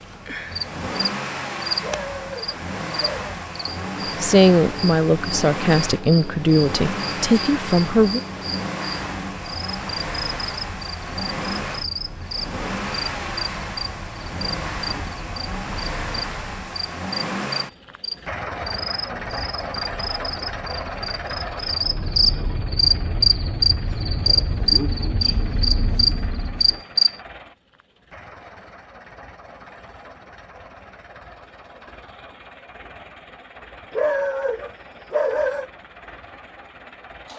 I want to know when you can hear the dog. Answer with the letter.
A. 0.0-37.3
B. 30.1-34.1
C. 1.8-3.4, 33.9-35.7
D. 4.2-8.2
C.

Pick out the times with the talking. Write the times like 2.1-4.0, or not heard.
4.2-8.2.